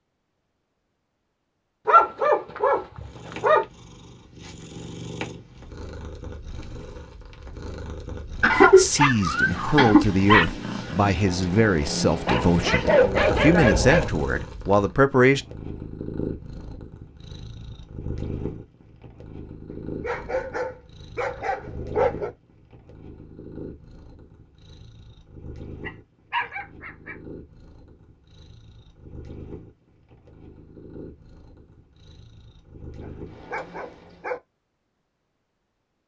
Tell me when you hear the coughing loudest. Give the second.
9 s.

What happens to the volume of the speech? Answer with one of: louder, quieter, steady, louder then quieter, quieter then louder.
steady.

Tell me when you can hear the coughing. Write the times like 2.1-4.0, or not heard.
8.4-10.0.